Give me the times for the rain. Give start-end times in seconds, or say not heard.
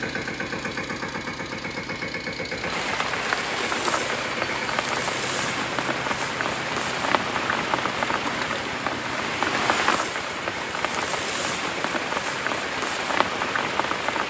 2.5-14.2.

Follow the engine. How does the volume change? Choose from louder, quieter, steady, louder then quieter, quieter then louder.
quieter.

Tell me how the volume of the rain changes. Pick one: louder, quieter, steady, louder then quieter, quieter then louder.
steady.